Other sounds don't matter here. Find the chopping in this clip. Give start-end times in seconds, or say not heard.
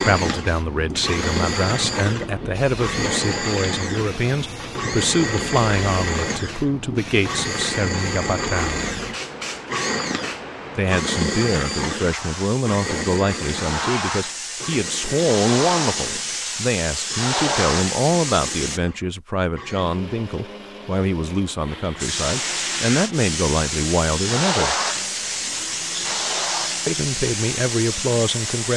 not heard.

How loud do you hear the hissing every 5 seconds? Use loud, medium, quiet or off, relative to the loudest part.
medium, medium, medium, loud, loud, loud.